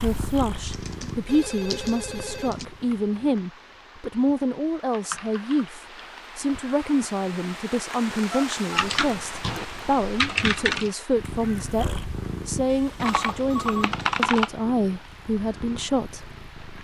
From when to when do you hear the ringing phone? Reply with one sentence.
The ringing phone can be heard from 1.2 to 2.5 s, from 8.3 to 8.8 s and from 12.7 to 13.9 s.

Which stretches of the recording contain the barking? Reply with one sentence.
You can't hear the barking here.